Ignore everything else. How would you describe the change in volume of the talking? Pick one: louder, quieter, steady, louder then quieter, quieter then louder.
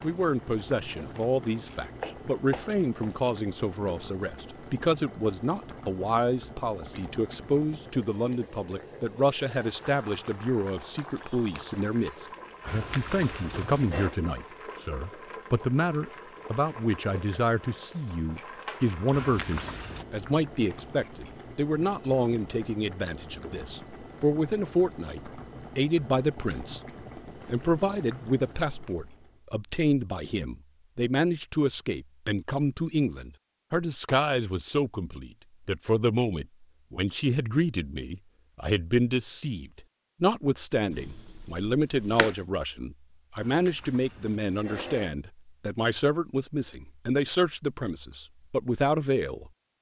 steady.